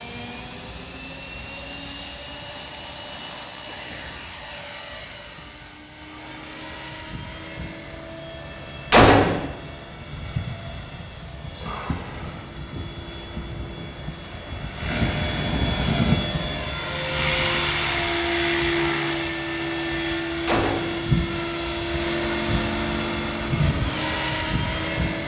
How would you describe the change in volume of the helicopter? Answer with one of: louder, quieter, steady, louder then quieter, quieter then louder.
louder.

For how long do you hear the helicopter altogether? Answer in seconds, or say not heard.
25 s.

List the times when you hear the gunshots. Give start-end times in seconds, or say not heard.
8.9-9.4, 20.4-21.0.